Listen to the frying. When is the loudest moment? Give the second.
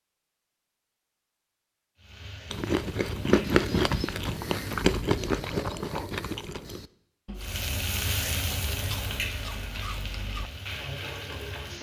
8 s.